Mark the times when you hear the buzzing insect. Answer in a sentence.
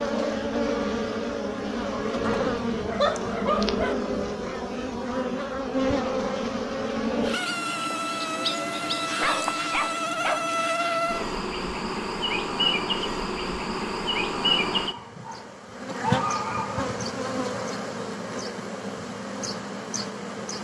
You can hear the buzzing insect from 0.0 to 20.5 s.